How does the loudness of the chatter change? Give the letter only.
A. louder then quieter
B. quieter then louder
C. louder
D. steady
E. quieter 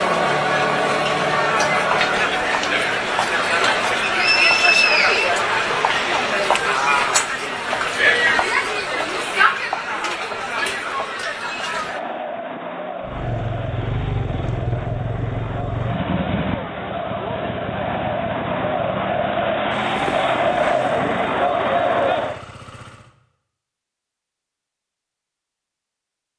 B.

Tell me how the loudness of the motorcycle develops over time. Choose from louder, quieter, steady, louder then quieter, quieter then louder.
quieter.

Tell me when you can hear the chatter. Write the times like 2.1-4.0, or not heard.
0.0-22.4.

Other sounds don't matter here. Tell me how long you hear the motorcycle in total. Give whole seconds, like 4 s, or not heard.
10 s.